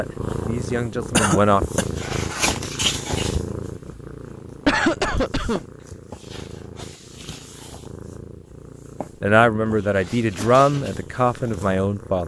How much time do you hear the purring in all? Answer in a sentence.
The purring can be heard for 12 seconds in total.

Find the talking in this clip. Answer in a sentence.
The talking can be heard from 0.0 to 1.6 s and from 9.2 to 12.2 s.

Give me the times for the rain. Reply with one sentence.
You can't hear the rain here.